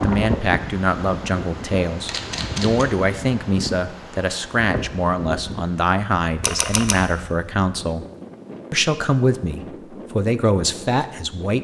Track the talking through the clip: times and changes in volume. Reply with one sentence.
The talking can be heard from 0.0 to 8.1 s, at a steady volume; and briefly from 8.7 to 11.5 s.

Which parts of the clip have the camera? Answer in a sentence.
The camera can be heard from 2.0 to 2.9 s and from 6.4 to 7.0 s.